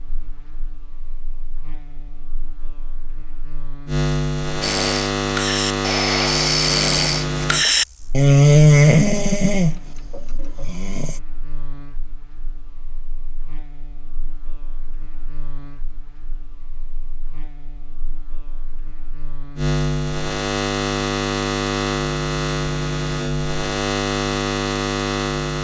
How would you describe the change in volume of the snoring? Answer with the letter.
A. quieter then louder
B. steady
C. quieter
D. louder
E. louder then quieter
E.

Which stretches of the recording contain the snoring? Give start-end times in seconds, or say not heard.
4.6-11.2.